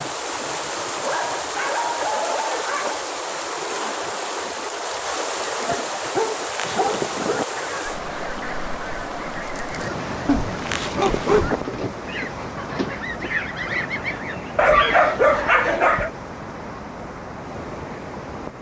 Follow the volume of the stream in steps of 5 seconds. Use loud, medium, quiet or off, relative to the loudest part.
loud, loud, loud, medium.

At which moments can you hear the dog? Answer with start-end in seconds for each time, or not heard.
1.0-3.0, 5.7-7.5, 10.2-11.6, 14.6-16.1.